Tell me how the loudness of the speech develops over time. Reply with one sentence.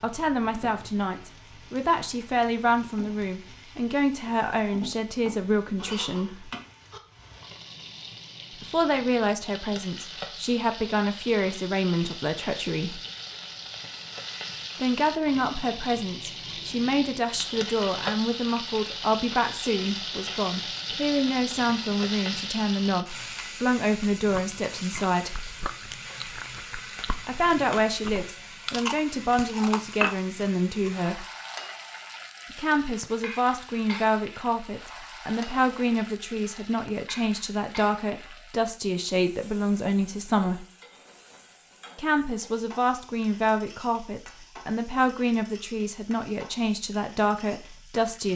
The loudness of the speech stays about the same.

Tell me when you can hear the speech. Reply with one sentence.
You can hear the speech from 0.0 to 6.5 s, from 8.6 to 13.0 s, from 14.8 to 25.5 s, from 27.2 to 31.2 s, from 32.5 to 40.6 s and from 42.0 to 48.3 s.